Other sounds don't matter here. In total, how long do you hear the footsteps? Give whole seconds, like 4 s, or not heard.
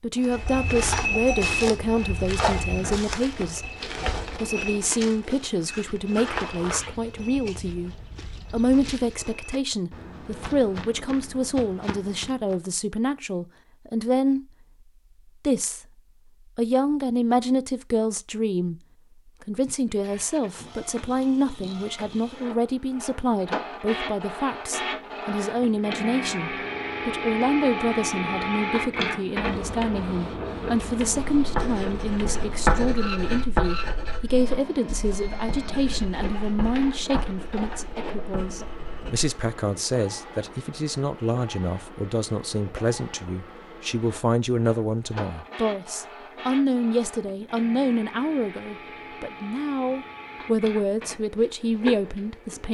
12 s.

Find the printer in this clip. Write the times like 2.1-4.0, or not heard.
19.9-52.6.